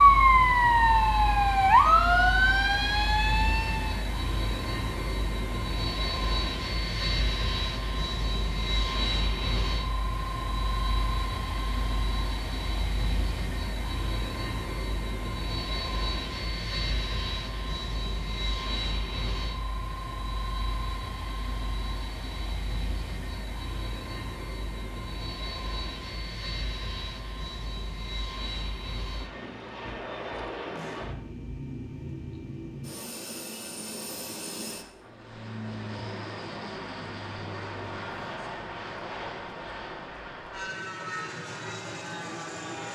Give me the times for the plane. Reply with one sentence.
You can hear the plane from 0.0 to 42.9 s.